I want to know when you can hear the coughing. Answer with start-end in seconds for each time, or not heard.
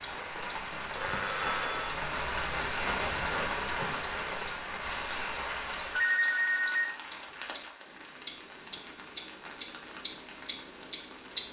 not heard.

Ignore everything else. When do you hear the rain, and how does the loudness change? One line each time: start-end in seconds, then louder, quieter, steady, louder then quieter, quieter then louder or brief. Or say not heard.
0.0-11.4 quieter.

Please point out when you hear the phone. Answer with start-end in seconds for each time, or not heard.
0.9-1.9, 6.0-7.0.